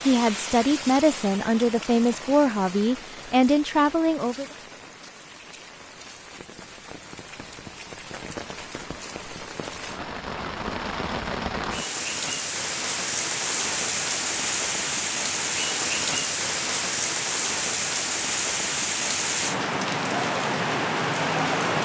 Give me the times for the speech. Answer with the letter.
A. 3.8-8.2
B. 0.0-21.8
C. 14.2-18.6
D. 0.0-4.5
D.